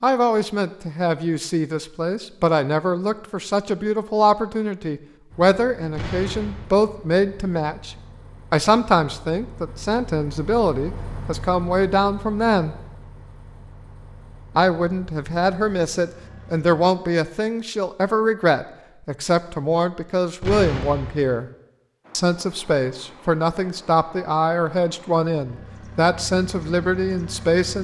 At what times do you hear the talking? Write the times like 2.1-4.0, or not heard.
0.0-12.8, 14.6-21.4, 22.1-27.7.